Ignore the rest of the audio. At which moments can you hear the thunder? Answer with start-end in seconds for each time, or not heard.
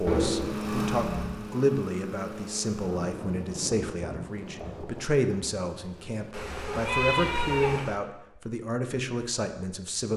2.8-6.3.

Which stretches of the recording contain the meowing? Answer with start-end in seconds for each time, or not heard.
0.1-1.4, 6.3-8.0.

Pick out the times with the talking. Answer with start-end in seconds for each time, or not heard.
0.0-10.1.